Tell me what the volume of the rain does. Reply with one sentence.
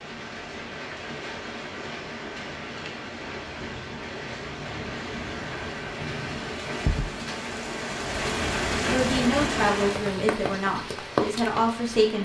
The volume of the rain goes up.